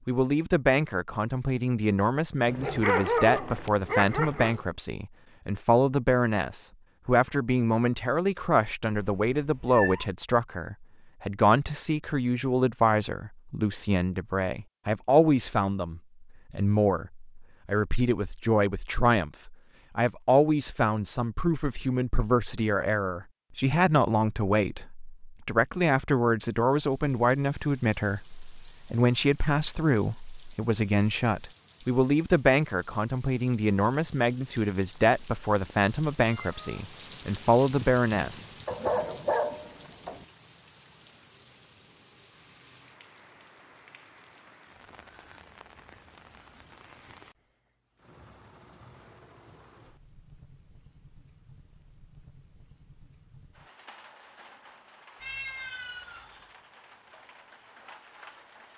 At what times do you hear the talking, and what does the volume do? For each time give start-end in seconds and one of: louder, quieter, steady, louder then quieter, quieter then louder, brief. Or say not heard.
0.1-38.5 steady.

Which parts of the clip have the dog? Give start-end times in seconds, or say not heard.
2.5-4.7, 38.6-40.2.